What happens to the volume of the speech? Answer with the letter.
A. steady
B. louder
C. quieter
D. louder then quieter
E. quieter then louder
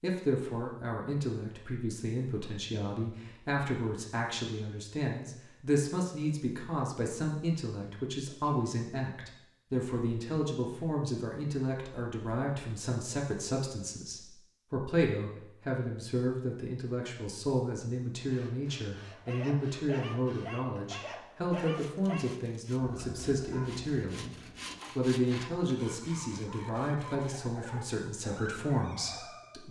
A.